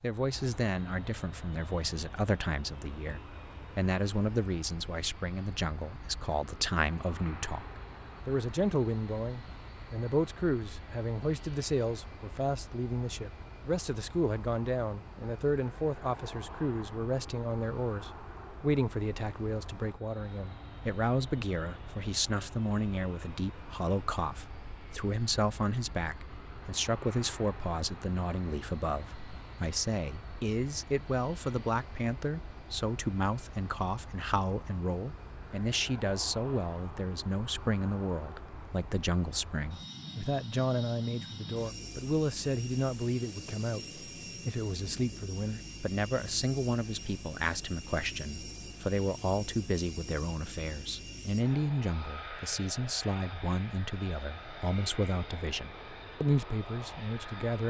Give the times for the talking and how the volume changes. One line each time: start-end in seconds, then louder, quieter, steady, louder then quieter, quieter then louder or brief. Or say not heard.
0.0-57.6 steady.